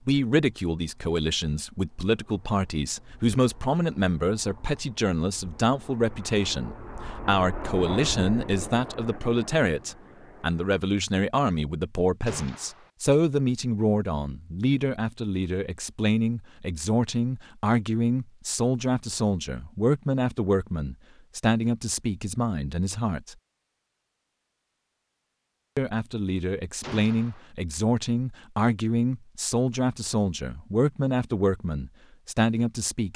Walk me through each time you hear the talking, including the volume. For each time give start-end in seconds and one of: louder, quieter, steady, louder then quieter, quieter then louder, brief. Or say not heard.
0.1-23.4 steady
25.8-33.1 steady.